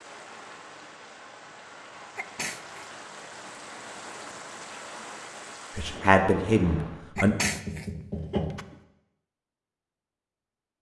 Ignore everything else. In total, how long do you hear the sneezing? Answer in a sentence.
The sneezing can be heard for 2 seconds in total.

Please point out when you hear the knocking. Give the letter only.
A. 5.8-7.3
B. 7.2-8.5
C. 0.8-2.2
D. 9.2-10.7
B.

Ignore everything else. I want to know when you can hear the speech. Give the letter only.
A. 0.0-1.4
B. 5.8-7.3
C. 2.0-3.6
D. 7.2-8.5
B.